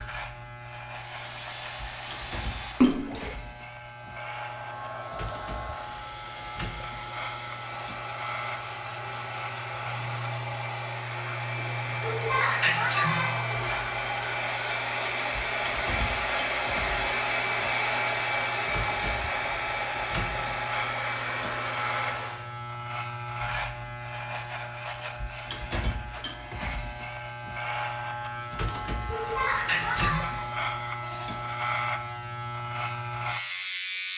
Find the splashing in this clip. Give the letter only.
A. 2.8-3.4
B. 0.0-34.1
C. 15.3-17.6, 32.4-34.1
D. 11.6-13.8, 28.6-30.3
A.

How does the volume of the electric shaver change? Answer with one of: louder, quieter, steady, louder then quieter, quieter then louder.
louder.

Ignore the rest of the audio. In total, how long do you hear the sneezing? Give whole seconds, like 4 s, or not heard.
4 s.